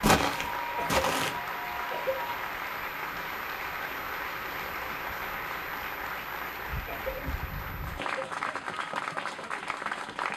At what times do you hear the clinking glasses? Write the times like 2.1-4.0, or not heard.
not heard.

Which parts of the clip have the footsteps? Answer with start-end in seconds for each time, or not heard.
0.0-1.4.